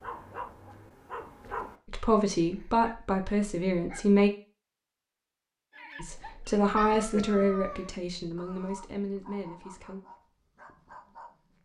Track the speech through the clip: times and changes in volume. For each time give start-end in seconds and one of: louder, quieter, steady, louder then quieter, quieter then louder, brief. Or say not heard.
1.9-4.3 brief
6.0-10.0 quieter.